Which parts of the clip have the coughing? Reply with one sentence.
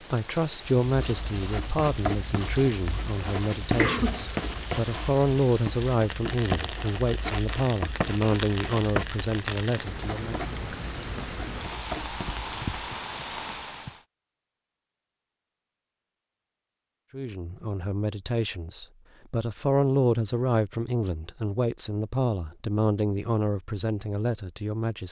You can hear the coughing from 3.8 to 4.5 s.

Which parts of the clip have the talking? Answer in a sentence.
You can hear the talking from 0.1 to 10.3 s and from 17.1 to 25.0 s.